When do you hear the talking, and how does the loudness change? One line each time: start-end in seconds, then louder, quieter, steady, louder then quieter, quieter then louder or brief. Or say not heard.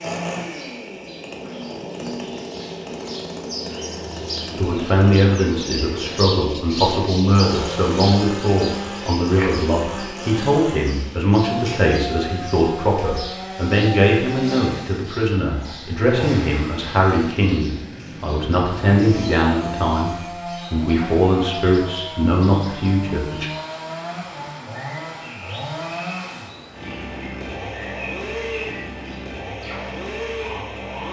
4.5-23.5 steady.